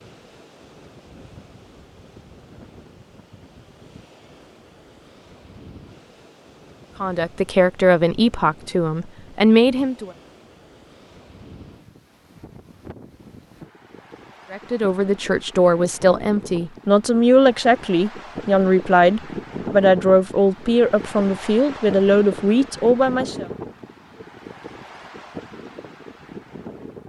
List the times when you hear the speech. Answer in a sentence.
You can hear the speech from 7.0 to 10.1 s and from 14.5 to 23.4 s.